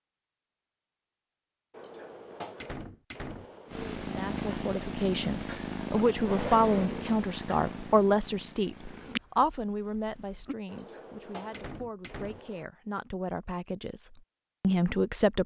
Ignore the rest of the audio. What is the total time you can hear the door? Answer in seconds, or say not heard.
4 s.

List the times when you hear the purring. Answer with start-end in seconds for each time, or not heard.
3.6-10.6.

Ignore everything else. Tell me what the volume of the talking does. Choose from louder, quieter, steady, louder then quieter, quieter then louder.
quieter then louder.